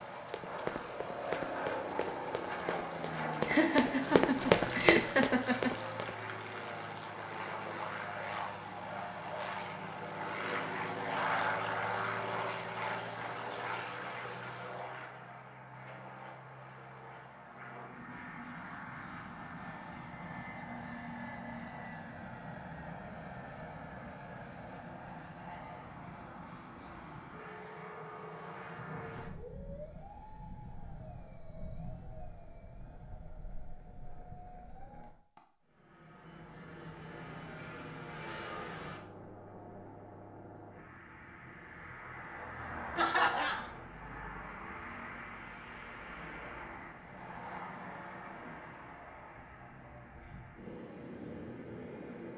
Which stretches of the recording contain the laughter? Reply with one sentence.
The laughter can be heard from 3.5 to 5.8 s and from 43.0 to 43.6 s.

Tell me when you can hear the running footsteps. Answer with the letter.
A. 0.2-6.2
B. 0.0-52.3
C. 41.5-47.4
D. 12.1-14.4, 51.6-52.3
A.